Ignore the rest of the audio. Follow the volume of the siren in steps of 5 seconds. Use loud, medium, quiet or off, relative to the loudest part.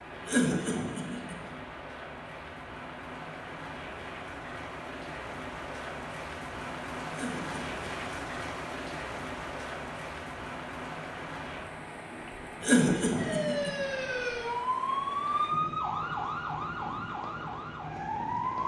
off, off, loud, loud.